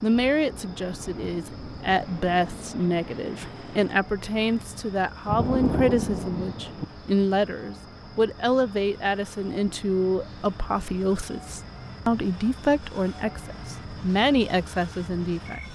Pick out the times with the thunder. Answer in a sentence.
You can hear the thunder from 5.2 to 6.8 s.